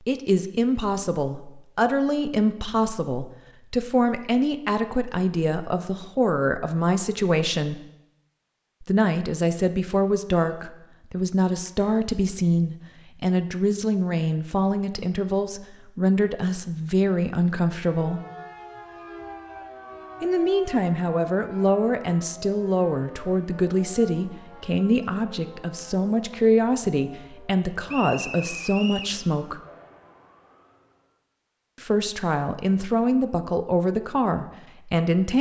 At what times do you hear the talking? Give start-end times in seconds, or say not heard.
0.1-7.8, 8.8-18.2, 20.2-29.6, 31.8-35.3.